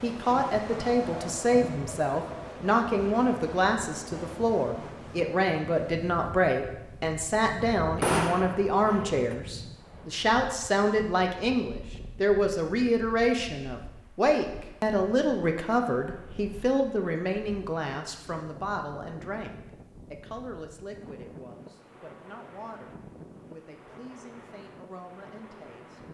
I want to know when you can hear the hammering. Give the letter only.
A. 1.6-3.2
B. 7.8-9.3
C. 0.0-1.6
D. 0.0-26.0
B.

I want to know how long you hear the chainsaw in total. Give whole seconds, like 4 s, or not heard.
not heard.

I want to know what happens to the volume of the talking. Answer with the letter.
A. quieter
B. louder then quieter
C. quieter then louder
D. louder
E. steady
A.